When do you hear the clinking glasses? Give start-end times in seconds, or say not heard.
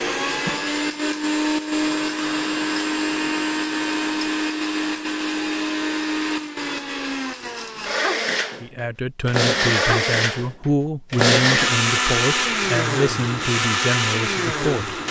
not heard.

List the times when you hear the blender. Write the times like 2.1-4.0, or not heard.
0.0-15.0.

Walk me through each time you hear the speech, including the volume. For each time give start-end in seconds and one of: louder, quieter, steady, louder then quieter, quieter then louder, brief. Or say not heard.
8.6-15.0 steady.